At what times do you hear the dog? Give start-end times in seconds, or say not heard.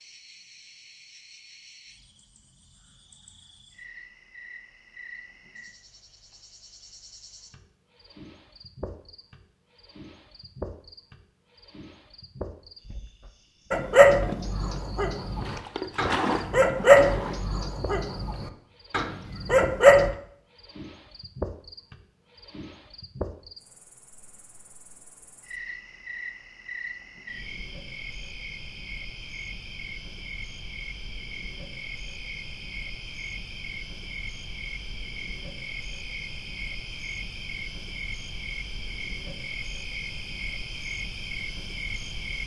13.7-20.1.